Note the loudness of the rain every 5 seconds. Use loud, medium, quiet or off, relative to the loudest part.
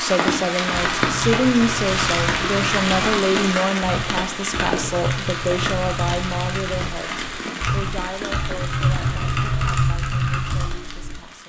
loud, medium, quiet.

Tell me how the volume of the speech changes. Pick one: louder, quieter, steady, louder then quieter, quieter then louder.
quieter.